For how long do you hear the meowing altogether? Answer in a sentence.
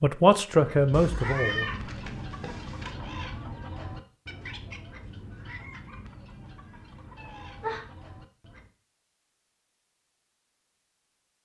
You can hear the meowing for 3 seconds altogether.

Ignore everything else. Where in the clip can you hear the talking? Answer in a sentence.
You can hear the talking from 0.0 to 1.7 s.